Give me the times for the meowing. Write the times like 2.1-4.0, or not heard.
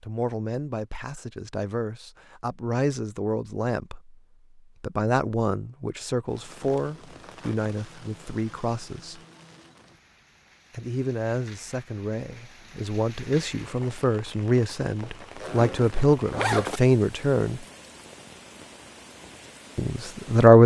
not heard.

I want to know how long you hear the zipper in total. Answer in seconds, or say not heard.
2 s.